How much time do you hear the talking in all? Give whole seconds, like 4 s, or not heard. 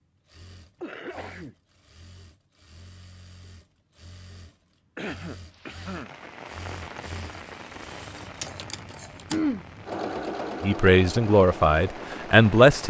2 s.